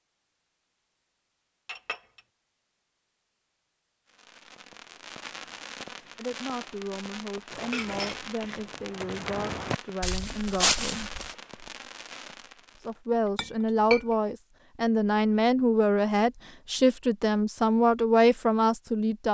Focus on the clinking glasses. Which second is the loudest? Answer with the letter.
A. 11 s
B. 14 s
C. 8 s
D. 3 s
B.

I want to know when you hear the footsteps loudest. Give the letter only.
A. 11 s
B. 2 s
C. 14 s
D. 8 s
A.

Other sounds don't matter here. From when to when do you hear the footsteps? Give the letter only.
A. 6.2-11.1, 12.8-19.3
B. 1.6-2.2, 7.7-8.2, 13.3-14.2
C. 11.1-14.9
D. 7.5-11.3
D.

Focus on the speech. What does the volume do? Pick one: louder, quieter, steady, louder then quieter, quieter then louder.
louder.